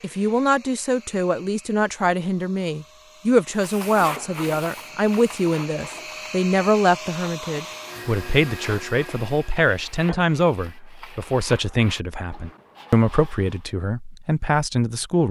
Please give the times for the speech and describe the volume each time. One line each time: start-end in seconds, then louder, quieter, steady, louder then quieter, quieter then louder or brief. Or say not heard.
0.0-15.2 steady.